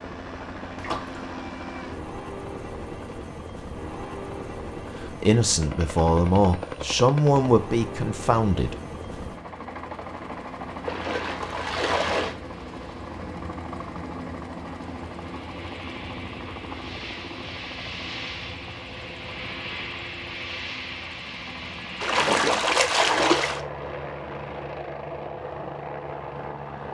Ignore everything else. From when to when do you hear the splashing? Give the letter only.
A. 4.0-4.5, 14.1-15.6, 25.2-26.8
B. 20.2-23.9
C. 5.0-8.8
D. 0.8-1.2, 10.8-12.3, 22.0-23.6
D.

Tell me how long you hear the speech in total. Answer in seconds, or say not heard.
4 s.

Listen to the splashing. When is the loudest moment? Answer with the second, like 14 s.
23 s.